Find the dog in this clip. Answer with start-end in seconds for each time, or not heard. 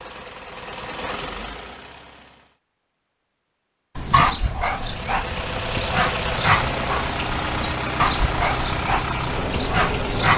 4.0-10.3.